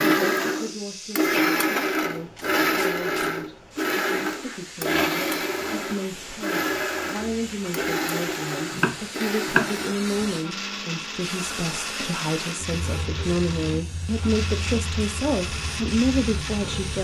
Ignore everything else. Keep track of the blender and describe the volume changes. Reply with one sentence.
The loudness of the blender goes down.